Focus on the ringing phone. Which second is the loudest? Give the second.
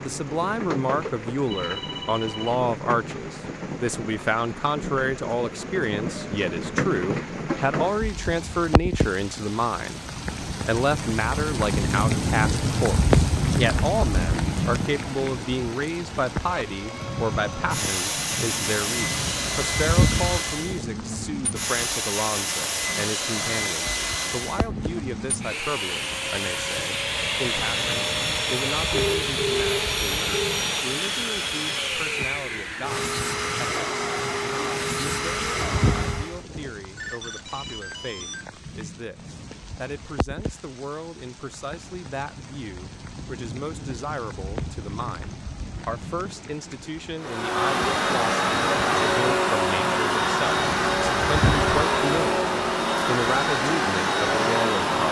30 s.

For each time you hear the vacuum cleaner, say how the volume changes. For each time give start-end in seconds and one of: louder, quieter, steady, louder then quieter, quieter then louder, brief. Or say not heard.
16.4-36.5 steady
47.2-55.0 steady.